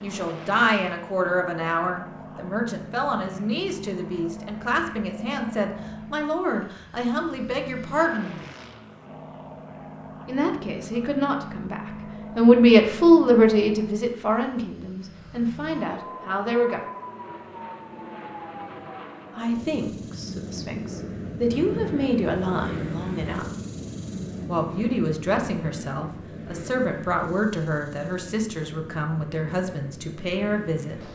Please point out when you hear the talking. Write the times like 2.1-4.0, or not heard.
0.0-8.3, 10.2-16.8, 19.4-23.4, 24.4-31.0.